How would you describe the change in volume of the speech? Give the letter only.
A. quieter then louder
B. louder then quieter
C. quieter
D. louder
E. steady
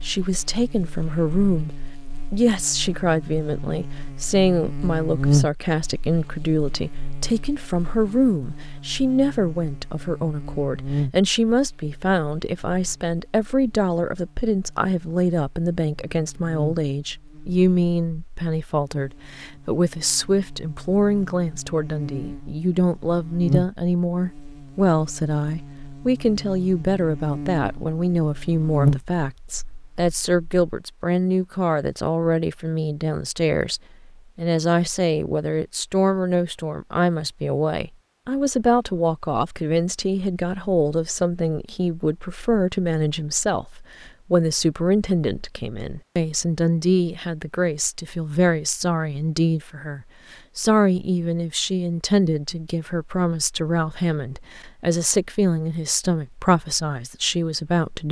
E.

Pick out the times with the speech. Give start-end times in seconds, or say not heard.
0.0-58.0.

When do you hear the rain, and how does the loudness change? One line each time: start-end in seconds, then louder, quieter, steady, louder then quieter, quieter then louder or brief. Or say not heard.
not heard.